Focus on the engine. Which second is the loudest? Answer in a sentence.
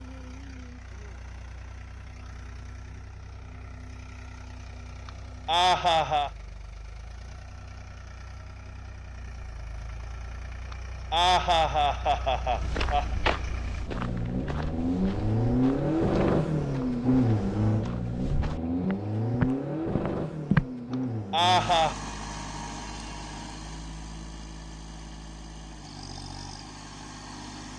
The loudest moment of the engine is at 16 seconds.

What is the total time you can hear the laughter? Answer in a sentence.
You can hear the laughter for 5 seconds altogether.